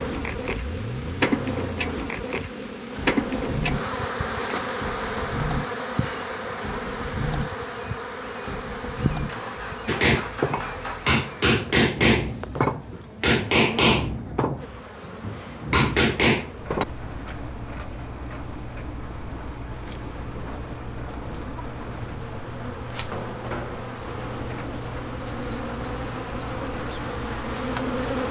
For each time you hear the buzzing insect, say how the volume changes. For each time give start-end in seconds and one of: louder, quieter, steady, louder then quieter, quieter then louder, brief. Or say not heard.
0.0-28.2 quieter then louder.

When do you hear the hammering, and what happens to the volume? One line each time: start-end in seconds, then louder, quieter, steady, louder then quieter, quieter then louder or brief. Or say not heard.
9.8-16.9 quieter then louder.